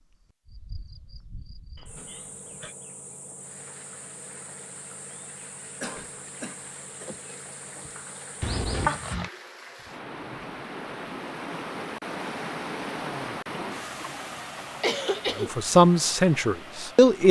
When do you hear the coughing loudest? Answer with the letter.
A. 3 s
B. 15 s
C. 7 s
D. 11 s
B.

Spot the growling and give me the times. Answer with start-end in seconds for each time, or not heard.
8.4-9.3.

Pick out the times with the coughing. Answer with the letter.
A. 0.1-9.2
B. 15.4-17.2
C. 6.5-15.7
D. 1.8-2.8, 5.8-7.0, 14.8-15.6
D.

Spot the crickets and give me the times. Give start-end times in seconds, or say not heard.
0.1-9.2.